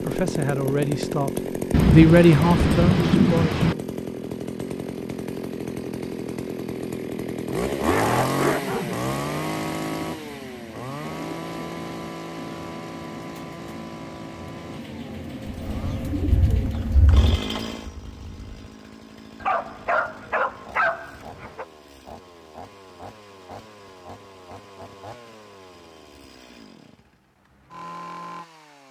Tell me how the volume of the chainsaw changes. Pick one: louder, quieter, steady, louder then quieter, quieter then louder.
quieter.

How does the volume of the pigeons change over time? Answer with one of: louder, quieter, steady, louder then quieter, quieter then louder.
louder.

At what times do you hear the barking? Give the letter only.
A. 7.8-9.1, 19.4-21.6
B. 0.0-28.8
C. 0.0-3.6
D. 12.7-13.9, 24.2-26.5
A.